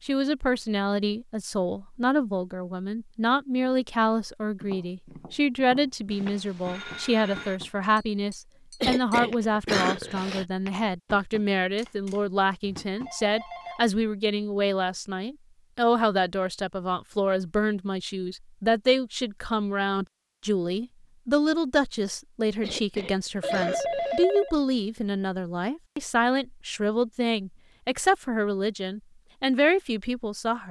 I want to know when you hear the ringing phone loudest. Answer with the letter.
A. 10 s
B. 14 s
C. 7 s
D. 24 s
D.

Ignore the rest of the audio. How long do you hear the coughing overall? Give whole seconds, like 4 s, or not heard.
3 s.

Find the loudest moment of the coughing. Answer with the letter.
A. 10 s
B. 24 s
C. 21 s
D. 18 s
A.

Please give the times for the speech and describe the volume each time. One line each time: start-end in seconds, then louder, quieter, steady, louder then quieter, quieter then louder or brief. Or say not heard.
0.0-30.6 steady.